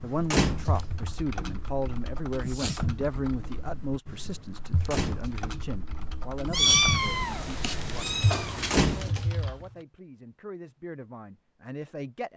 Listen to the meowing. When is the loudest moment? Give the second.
7 s.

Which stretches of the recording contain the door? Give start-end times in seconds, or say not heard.
0.2-1.0, 4.8-5.4, 8.6-9.3.